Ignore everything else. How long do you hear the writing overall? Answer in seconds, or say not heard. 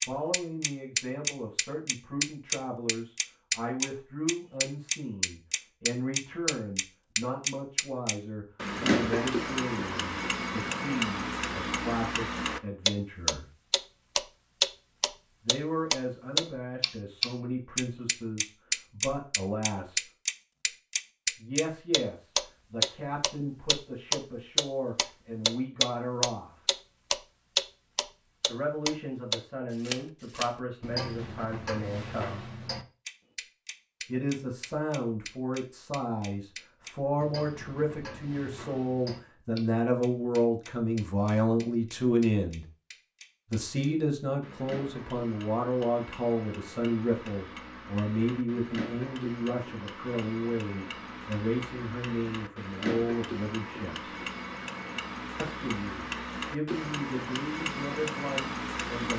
not heard.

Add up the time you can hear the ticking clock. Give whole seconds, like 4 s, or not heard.
59 s.